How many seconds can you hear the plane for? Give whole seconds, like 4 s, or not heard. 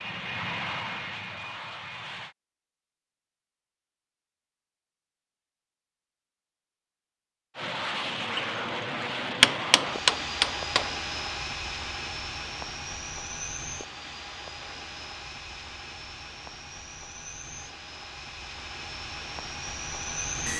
15 s.